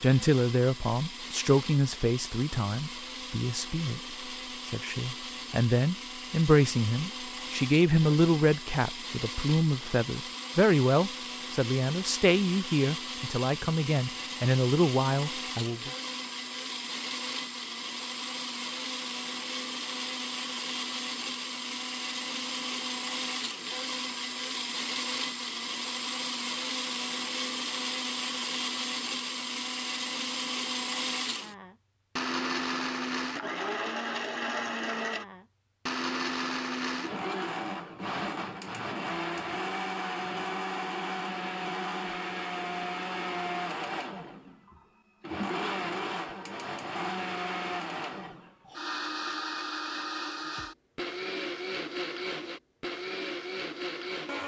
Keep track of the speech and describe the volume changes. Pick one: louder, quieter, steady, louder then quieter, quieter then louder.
steady.